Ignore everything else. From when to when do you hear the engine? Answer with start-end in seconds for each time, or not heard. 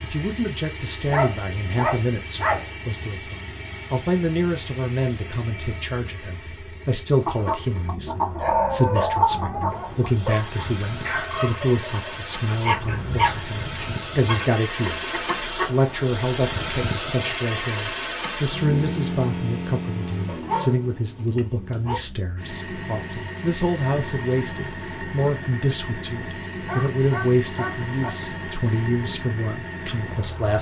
0.0-30.5.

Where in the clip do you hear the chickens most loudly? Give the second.
9 s.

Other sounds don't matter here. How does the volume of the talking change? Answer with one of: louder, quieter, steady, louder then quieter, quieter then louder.
steady.